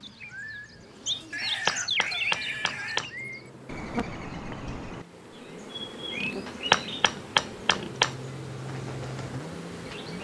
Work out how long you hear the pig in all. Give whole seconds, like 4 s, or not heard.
4 s.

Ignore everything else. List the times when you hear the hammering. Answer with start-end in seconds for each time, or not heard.
1.4-3.1, 6.5-8.2.